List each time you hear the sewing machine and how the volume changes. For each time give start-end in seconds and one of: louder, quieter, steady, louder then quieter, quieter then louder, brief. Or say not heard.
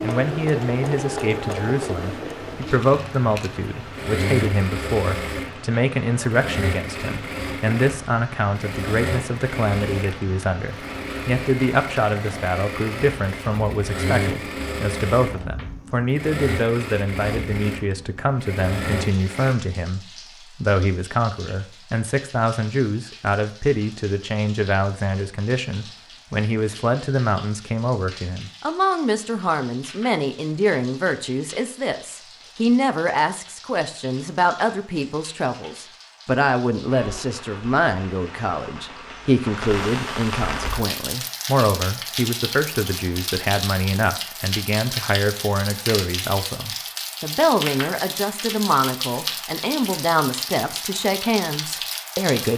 0.0-19.6 steady.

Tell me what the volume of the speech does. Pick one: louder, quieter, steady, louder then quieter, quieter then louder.
steady.